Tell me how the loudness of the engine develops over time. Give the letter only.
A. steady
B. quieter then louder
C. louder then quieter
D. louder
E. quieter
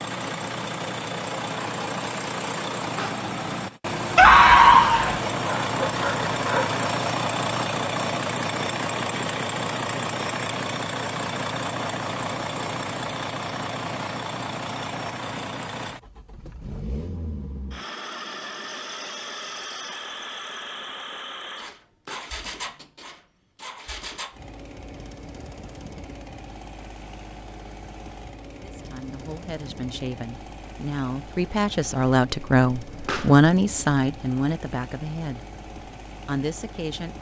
E.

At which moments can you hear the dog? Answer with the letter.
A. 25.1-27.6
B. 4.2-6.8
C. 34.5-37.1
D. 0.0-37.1
B.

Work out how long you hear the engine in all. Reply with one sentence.
You can hear the engine for 37 seconds altogether.